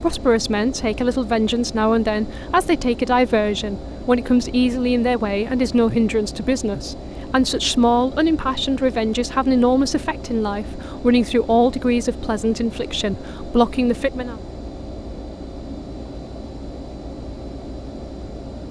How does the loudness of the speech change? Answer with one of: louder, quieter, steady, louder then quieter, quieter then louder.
steady.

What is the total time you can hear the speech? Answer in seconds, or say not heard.
14 s.